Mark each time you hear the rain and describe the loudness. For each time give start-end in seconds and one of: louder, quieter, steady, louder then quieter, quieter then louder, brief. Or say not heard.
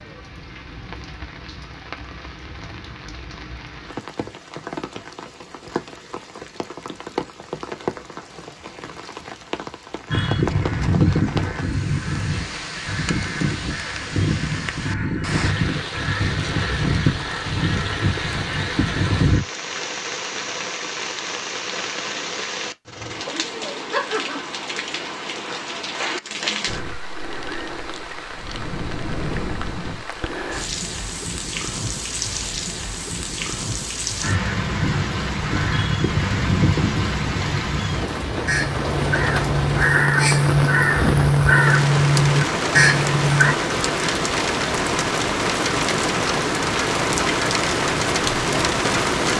0.0-49.3 louder.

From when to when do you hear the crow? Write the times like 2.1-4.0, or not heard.
10.1-19.4, 34.2-43.5.